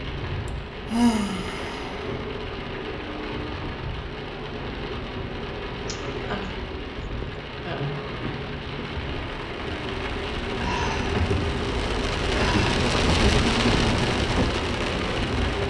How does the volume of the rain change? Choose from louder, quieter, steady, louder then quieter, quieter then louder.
louder.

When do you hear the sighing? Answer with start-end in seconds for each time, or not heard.
0.5-2.1, 5.8-6.6, 7.2-7.9, 10.6-11.2, 12.3-12.8.